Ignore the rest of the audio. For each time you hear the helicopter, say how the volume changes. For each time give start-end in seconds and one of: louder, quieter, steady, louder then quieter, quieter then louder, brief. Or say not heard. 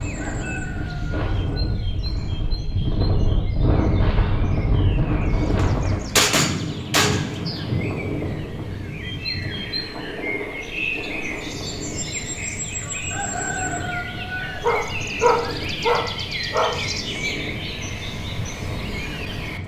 not heard.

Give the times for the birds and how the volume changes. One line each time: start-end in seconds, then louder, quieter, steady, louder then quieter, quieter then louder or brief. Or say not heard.
0.0-19.6 louder.